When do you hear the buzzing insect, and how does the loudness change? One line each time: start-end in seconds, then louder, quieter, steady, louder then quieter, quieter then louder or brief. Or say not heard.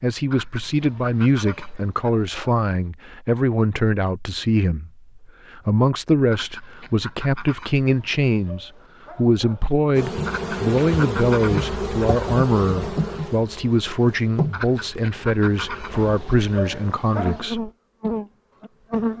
9.9-19.1 quieter then louder.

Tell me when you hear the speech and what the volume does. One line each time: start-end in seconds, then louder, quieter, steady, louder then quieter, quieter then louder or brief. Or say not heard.
0.0-17.7 steady.